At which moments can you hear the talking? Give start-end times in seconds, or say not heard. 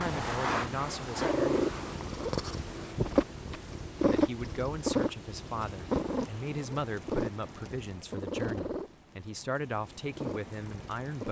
0.0-1.6, 4.0-11.2.